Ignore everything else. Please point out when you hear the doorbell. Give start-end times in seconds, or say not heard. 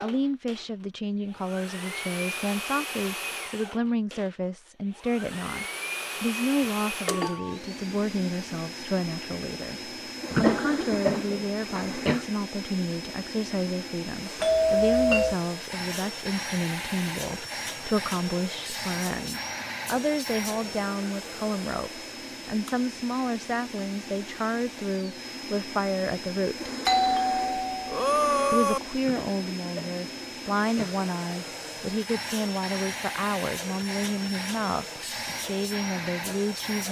7.0-7.5, 14.4-15.3, 26.9-28.8.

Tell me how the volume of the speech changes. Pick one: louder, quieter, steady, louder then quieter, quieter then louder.
steady.